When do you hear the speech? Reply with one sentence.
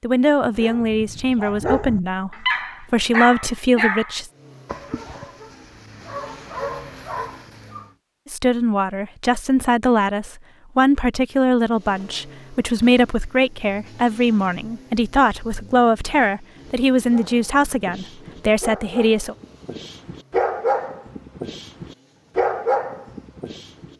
The speech can be heard from 0.0 to 4.3 s and from 8.3 to 19.4 s.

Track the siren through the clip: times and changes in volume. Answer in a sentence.
The siren can't be heard in this clip.